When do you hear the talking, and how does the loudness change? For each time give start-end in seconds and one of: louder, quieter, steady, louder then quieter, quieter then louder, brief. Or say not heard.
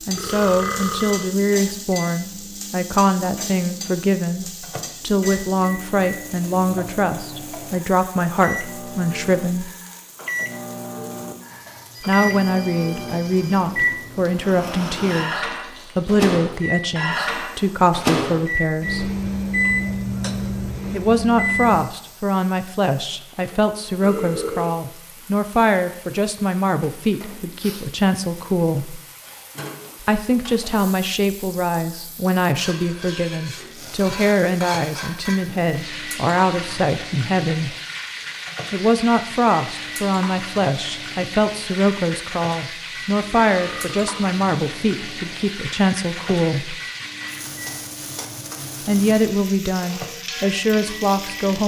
0.1-9.7 steady
12.1-19.1 steady
20.9-29.0 steady
30.0-37.8 steady
38.7-46.8 steady
48.9-51.6 brief.